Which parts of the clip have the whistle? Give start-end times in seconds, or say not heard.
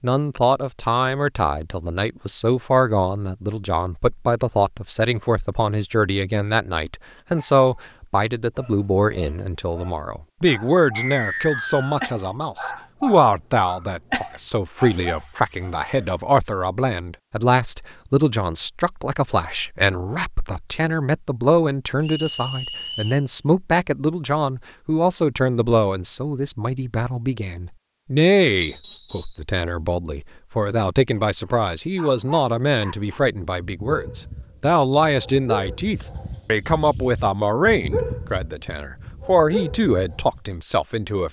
10.9-12.1, 22.0-23.2, 28.6-29.4.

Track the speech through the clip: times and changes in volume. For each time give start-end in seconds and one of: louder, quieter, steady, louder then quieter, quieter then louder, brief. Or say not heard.
0.0-41.2 steady.